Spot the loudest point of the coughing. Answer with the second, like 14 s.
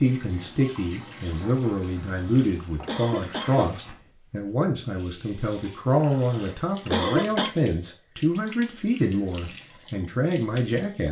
7 s.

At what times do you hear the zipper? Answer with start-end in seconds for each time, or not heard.
not heard.